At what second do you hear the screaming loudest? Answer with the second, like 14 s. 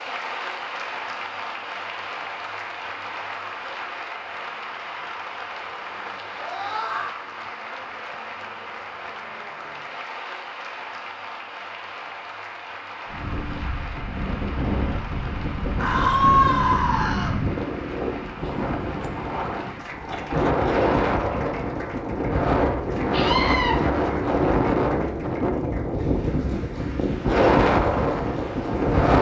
16 s.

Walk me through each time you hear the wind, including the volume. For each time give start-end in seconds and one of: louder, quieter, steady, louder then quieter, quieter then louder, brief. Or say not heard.
13.1-29.1 louder.